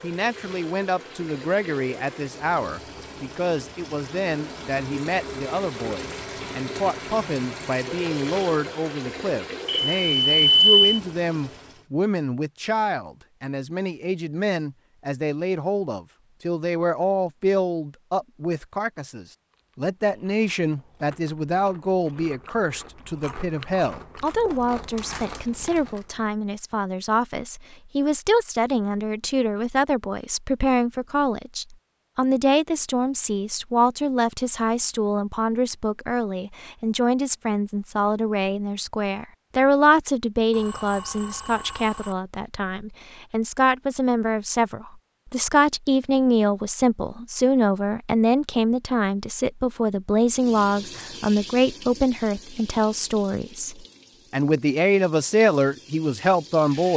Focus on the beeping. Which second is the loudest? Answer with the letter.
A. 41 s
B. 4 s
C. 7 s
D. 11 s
D.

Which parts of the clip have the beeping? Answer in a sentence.
The beeping can be heard from 9.7 to 11.0 s and from 40.5 to 42.1 s.